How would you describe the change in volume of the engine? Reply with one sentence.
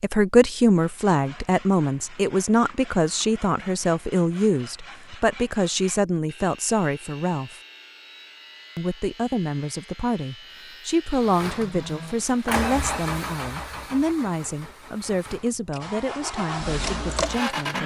The loudness of the engine goes down, then up.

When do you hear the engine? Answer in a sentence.
The engine can be heard from 11.2 to 17.8 s.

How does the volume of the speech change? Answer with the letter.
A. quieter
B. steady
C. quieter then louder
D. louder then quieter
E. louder
A.